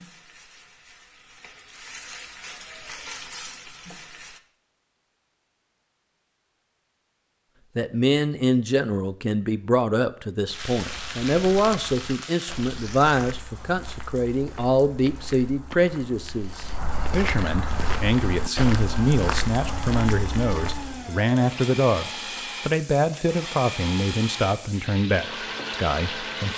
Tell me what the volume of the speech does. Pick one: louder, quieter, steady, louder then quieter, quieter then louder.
steady.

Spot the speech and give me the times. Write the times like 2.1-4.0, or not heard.
7.8-26.5.